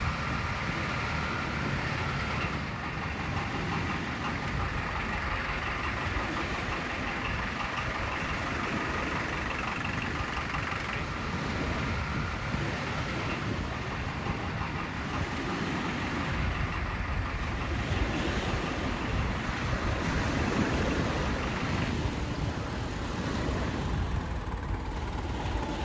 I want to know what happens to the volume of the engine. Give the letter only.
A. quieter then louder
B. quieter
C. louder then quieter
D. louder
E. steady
B.